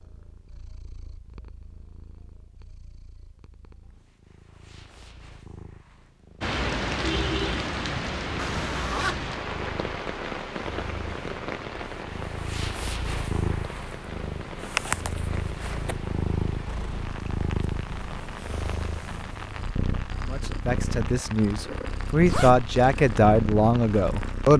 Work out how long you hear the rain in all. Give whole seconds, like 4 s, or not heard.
18 s.